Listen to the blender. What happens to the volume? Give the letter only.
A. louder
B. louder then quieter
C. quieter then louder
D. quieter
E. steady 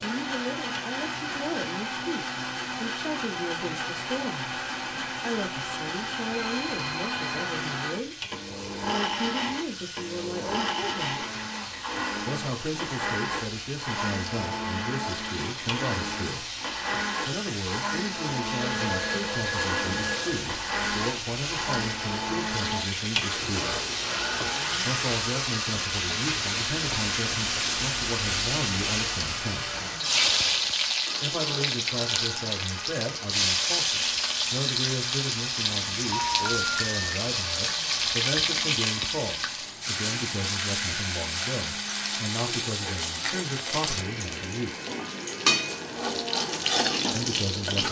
D.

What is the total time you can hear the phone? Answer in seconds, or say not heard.
4 s.